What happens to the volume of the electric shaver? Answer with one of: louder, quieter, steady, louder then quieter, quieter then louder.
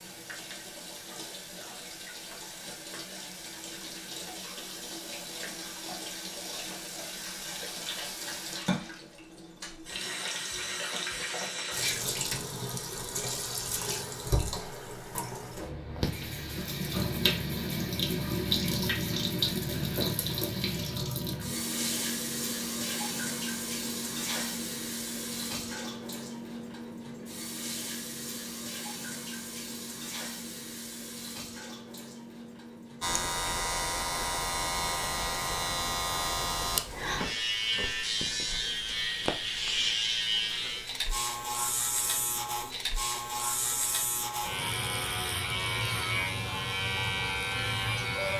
steady.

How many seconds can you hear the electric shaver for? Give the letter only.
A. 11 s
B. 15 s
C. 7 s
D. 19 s
B.